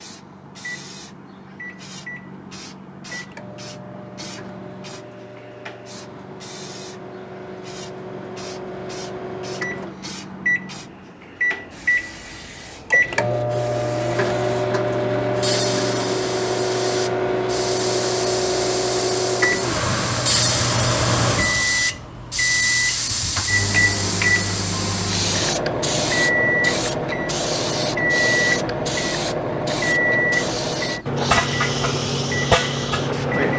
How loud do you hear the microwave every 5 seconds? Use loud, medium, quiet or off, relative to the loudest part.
quiet, quiet, loud, loud, loud, loud, loud.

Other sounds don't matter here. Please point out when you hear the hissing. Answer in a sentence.
The hissing can be heard from 0.0 to 33.5 s.